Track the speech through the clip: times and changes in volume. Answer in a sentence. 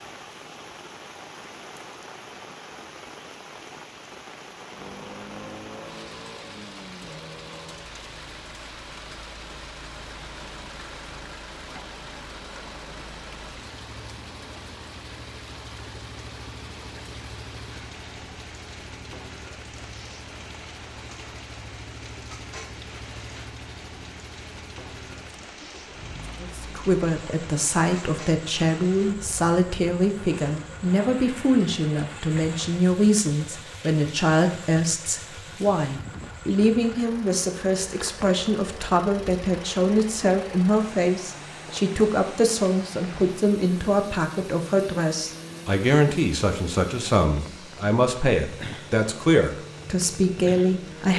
The speech can be heard from 26.4 to 51.1 s, at a steady volume.